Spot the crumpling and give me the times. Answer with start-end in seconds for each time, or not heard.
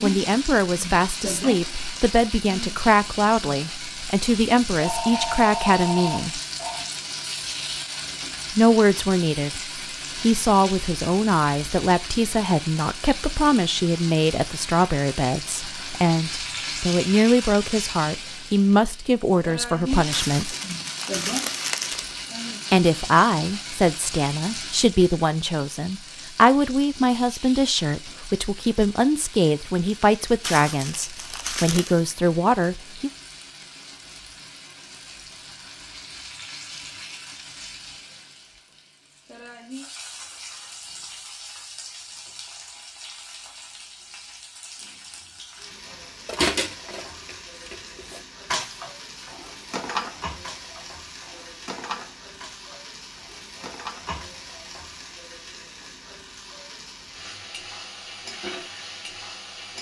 20.1-22.1, 30.4-32.0.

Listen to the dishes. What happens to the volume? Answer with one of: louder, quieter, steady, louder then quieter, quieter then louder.
louder then quieter.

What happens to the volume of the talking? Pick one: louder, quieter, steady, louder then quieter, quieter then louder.
steady.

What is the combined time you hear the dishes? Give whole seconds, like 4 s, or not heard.
9 s.